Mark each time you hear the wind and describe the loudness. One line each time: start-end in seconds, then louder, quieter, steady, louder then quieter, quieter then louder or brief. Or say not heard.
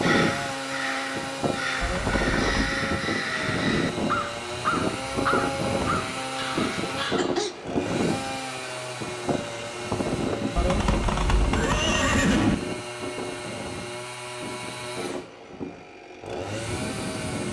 0.0-17.4 quieter.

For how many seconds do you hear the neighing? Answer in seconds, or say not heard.
3 s.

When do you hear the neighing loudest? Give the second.
12 s.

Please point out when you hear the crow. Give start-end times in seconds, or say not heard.
0.0-7.7.